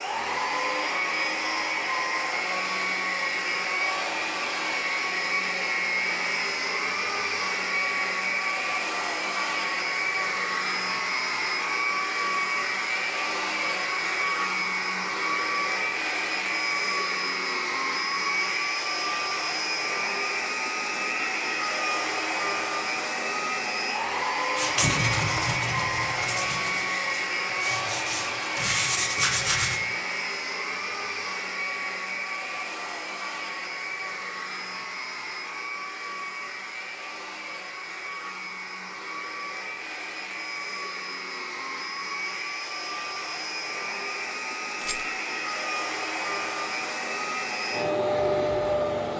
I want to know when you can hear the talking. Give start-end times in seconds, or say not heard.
not heard.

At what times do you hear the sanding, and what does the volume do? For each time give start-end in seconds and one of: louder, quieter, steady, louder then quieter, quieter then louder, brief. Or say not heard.
24.6-29.8 quieter then louder.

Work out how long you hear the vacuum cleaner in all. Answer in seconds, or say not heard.
49 s.